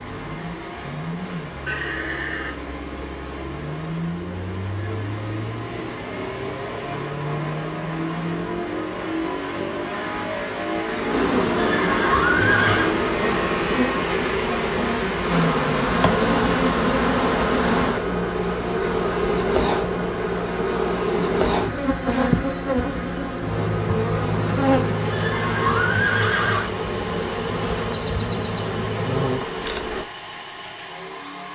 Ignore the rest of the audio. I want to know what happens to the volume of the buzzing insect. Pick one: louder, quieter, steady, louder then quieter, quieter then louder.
louder.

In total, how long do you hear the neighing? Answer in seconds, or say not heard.
4 s.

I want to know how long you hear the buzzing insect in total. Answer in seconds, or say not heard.
30 s.